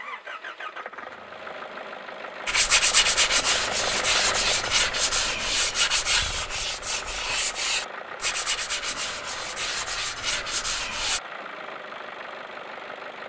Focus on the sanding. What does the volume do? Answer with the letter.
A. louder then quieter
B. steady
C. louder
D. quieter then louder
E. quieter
E.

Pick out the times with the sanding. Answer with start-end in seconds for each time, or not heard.
2.5-11.2.